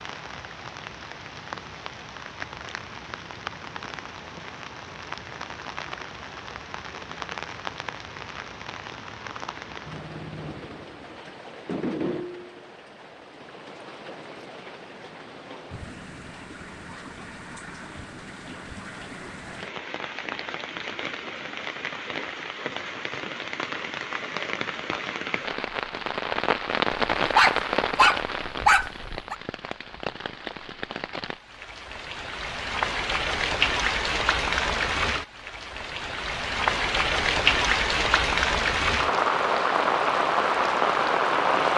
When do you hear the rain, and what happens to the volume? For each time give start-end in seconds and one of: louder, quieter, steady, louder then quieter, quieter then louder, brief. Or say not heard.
0.0-41.7 louder.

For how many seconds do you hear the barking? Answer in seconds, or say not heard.
2 s.